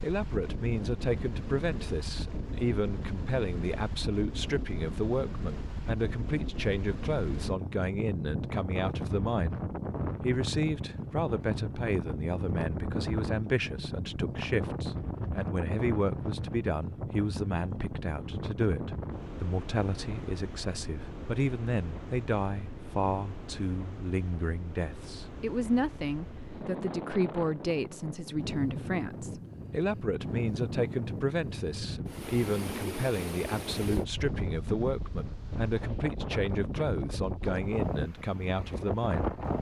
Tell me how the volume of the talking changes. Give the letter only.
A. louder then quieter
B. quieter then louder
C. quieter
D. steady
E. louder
D.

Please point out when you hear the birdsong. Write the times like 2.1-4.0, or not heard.
not heard.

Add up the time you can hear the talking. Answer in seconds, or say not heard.
39 s.